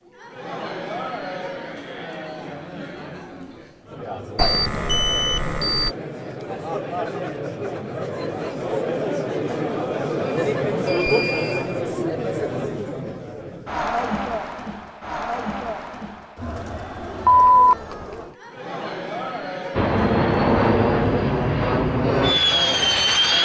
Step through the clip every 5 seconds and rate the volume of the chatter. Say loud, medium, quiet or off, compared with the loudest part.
medium, loud, loud, medium, medium.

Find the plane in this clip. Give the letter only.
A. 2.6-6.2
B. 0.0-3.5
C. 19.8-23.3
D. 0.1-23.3
C.